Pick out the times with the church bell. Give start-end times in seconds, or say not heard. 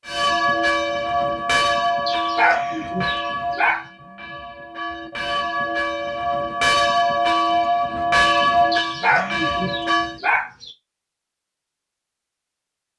0.1-10.2.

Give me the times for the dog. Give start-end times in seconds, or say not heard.
2.0-3.9, 8.7-10.7.